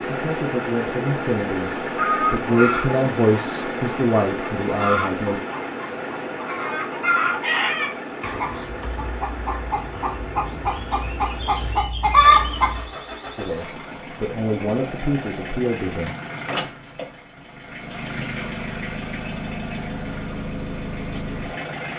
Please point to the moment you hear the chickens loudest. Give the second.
12 s.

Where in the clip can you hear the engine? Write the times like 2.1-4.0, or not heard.
0.0-21.9.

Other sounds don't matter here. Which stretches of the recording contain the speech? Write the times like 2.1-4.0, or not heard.
0.1-5.4, 13.3-16.1.